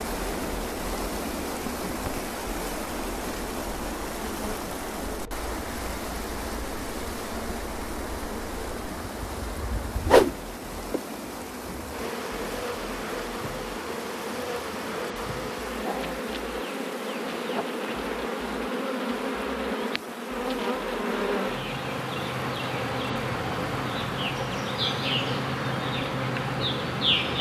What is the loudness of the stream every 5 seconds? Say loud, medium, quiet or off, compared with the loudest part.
loud, loud, medium, medium, medium, off.